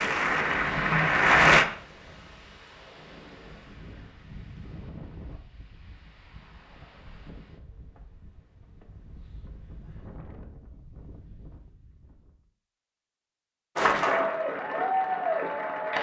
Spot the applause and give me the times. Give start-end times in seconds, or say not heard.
0.0-1.6, 13.8-15.9.